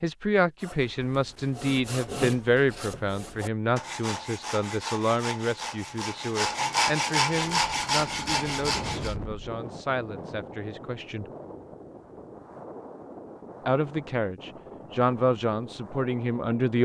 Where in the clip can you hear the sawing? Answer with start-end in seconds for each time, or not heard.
0.6-9.2.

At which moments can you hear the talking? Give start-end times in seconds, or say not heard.
0.0-11.2, 13.7-16.8.